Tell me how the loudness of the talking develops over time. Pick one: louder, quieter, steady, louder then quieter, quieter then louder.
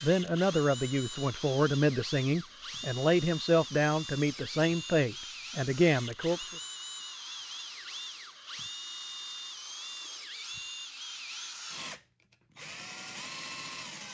steady.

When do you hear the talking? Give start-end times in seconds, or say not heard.
0.0-6.5.